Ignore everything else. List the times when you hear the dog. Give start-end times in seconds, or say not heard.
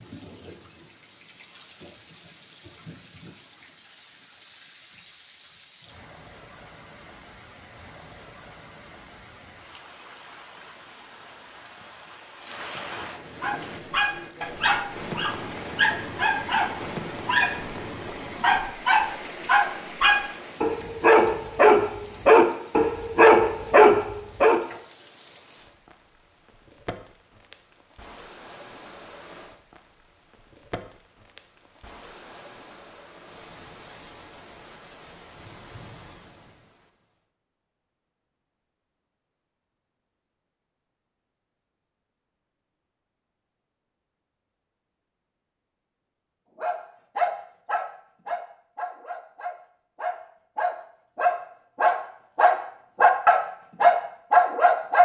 13.4-17.8, 18.4-24.6, 46.6-55.0.